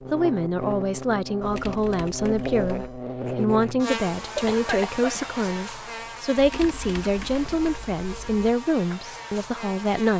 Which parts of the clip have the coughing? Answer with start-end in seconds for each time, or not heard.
4.3-5.2.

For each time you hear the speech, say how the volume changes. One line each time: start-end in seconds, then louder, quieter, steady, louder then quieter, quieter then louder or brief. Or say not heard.
0.1-10.1 steady.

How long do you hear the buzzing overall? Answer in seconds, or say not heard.
10 s.